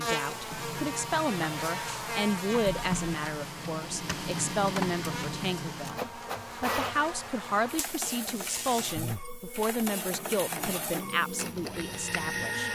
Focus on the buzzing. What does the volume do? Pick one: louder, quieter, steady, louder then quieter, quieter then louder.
quieter.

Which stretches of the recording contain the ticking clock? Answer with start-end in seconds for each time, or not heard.
not heard.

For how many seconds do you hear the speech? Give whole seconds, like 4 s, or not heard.
13 s.